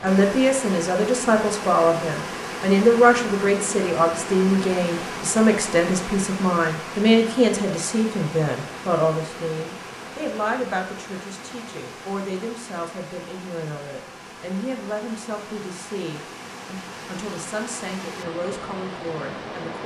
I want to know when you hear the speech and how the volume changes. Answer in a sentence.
The speech can be heard from 0.0 to 19.8 s, getting quieter.